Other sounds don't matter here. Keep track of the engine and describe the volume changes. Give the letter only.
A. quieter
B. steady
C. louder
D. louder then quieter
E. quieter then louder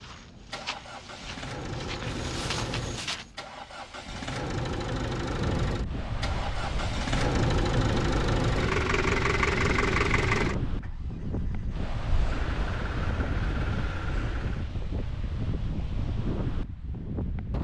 D.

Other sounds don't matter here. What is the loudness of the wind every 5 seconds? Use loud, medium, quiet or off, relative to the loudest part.
off, loud, loud, loud.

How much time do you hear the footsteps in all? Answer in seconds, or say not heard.
3 s.